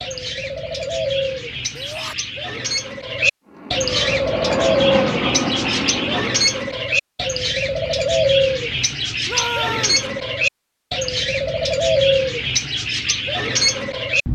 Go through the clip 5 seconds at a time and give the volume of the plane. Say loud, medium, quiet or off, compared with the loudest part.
loud, loud, off.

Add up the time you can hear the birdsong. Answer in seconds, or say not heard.
14 s.